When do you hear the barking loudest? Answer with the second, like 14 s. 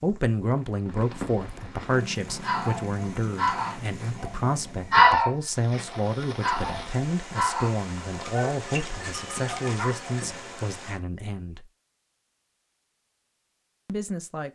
5 s.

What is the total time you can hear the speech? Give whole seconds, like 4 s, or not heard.
12 s.